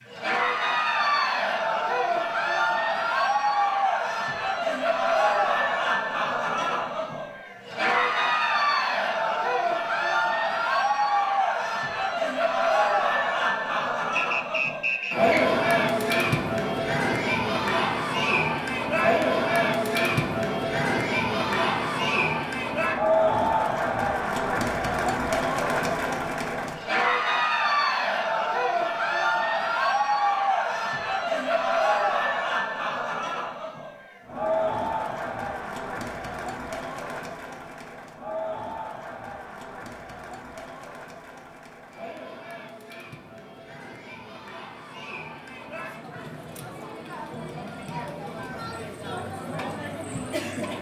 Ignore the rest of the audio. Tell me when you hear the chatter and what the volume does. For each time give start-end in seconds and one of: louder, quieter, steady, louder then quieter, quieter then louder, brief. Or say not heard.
0.1-50.7 quieter.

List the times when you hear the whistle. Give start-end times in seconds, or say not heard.
14.2-15.5.